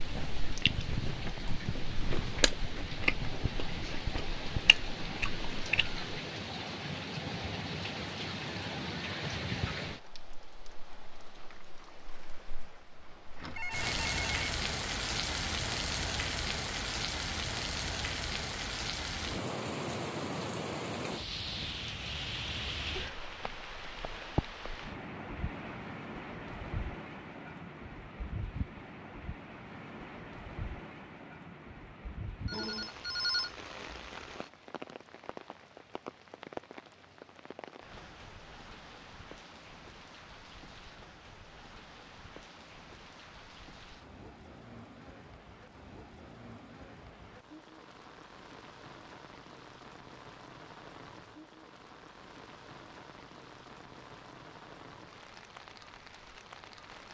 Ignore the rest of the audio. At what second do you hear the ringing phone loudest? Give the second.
33 s.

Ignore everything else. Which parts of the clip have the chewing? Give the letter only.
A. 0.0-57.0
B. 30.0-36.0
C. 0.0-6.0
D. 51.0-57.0
C.